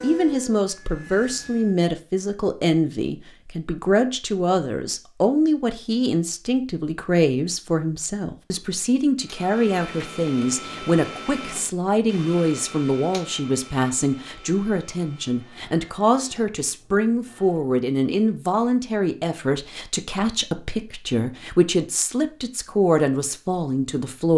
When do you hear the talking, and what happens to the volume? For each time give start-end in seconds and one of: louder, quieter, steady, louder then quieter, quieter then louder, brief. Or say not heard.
0.0-24.3 steady.